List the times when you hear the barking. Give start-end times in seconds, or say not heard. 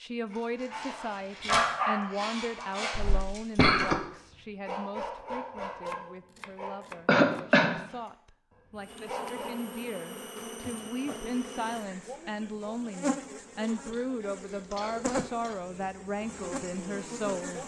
0.3-6.8, 7.9-9.7.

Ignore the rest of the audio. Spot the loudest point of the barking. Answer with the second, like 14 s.
2 s.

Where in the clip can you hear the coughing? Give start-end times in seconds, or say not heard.
3.0-4.0, 7.0-7.8, 13.6-15.6.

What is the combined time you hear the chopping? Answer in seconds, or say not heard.
2 s.